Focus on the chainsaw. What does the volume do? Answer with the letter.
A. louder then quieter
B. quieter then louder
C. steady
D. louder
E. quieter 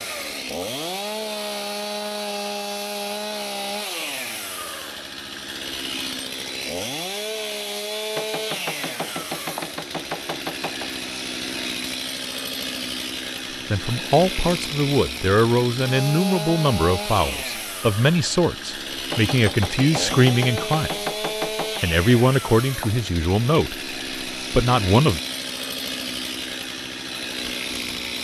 C.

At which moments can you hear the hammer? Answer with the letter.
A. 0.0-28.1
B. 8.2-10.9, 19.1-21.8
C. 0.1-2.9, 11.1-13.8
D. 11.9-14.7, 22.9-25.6
B.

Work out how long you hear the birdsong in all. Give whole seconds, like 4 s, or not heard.
not heard.